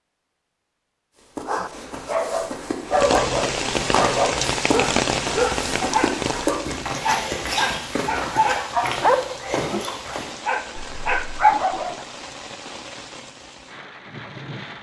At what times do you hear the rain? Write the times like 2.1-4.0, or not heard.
2.9-14.7.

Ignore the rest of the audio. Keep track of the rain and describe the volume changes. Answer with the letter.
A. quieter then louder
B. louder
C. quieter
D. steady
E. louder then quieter
C.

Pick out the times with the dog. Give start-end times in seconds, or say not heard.
1.4-12.0.